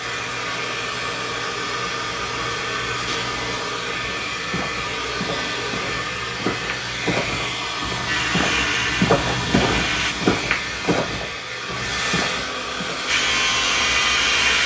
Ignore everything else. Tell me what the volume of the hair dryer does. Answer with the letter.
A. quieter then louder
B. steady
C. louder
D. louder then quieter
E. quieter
B.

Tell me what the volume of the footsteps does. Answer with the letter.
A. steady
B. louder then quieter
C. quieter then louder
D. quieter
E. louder
B.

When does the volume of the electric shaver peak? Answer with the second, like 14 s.
14 s.